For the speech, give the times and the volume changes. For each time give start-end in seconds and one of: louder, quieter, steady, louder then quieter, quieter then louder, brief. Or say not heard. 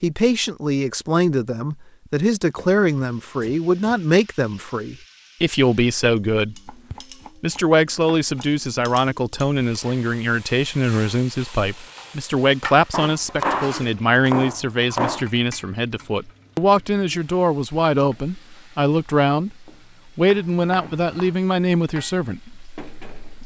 0.0-6.7 steady
7.4-23.4 steady.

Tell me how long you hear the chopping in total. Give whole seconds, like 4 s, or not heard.
7 s.